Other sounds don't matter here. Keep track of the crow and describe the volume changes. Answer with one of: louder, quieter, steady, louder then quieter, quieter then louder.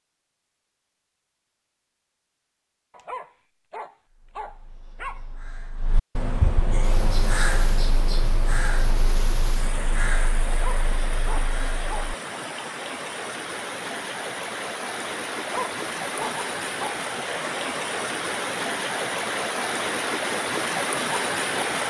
louder then quieter.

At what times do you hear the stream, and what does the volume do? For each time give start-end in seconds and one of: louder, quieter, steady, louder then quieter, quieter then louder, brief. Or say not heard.
6.8-21.8 louder.